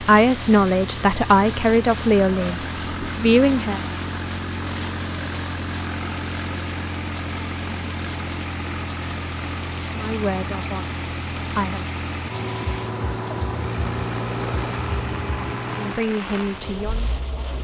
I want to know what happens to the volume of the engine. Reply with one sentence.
The volume of the engine stays about the same.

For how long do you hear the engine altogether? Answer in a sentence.
The engine can be heard for 17 seconds in total.